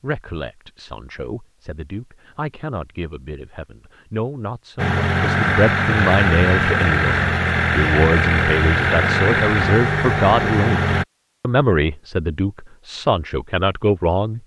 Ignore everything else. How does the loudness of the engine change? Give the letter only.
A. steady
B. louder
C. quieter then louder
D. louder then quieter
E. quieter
A.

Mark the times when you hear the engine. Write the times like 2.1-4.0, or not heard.
4.8-11.1.